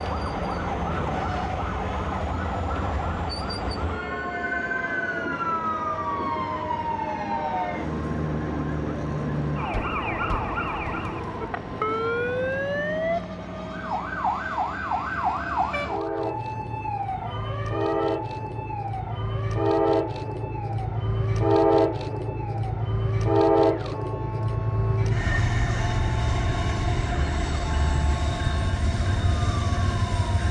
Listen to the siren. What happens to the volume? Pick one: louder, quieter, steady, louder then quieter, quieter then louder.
quieter.